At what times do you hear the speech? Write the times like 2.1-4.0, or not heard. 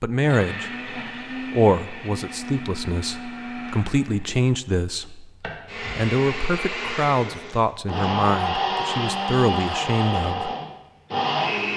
0.0-10.5.